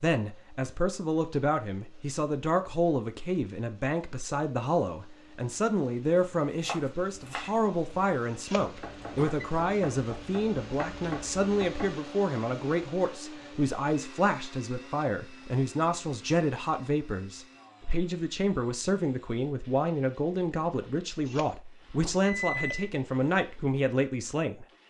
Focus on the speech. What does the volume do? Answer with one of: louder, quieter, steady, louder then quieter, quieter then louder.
steady.